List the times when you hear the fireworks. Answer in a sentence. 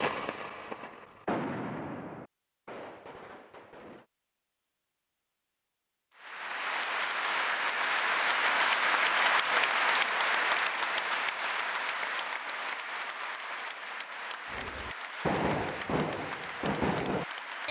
You can hear the fireworks from 0.0 to 4.0 s and from 14.5 to 17.6 s.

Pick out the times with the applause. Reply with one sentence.
You can hear the applause from 6.2 to 17.6 s.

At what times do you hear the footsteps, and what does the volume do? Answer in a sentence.
The footsteps can't be heard in this clip.